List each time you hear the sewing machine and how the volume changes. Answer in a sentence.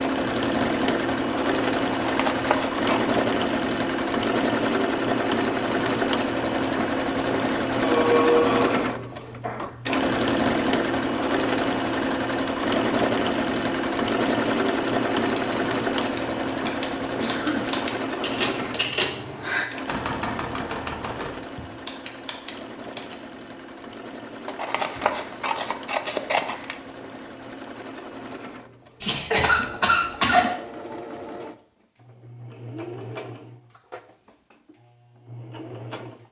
You can hear the sewing machine from 0.0 to 36.2 s, getting quieter.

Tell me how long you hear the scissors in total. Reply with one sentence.
You can hear the scissors for 3 seconds altogether.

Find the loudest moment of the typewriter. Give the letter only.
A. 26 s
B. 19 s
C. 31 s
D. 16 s
B.